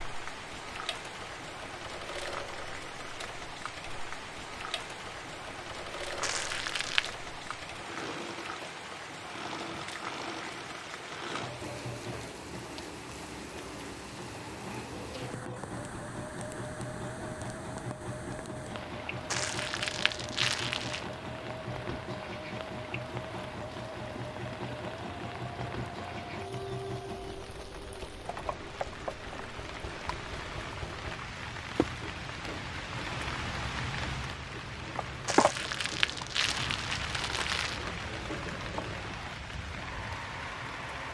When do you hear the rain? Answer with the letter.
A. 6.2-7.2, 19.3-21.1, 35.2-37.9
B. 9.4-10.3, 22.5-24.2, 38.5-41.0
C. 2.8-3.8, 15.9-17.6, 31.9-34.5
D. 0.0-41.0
D.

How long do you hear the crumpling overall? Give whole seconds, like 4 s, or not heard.
5 s.